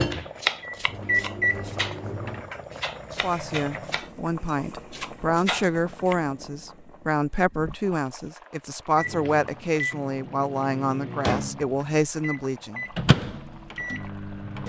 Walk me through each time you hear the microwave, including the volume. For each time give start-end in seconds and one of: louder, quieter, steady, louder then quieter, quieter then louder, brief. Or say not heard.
0.0-2.5 brief
8.9-14.6 louder then quieter.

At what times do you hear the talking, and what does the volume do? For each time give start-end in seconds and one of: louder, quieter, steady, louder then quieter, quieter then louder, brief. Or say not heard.
3.2-12.8 steady.